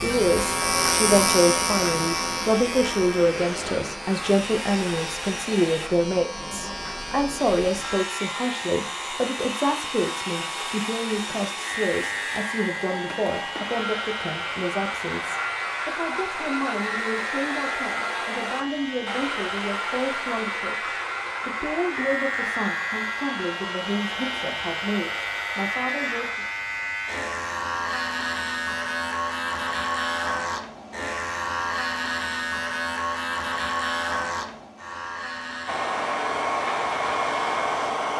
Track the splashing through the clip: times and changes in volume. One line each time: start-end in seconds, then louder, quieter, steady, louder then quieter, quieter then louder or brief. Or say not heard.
not heard.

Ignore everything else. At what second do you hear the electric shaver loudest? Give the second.
1 s.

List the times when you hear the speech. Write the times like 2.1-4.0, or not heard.
0.0-26.4.